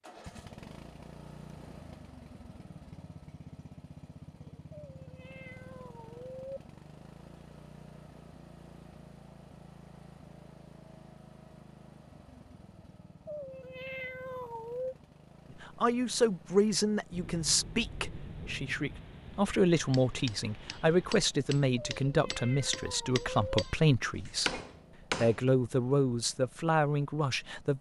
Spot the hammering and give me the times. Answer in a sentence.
The hammering can be heard from 19.9 to 25.4 s.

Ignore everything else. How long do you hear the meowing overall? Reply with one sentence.
The meowing can be heard for 5 seconds in total.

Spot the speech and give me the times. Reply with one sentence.
The speech can be heard from 15.6 to 24.6 s and from 25.2 to 27.7 s.